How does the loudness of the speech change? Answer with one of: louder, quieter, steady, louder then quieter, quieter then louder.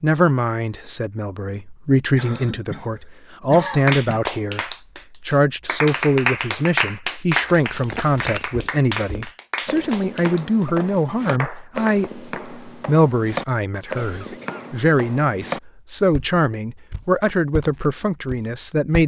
steady.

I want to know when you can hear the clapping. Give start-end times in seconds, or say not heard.
3.9-12.4.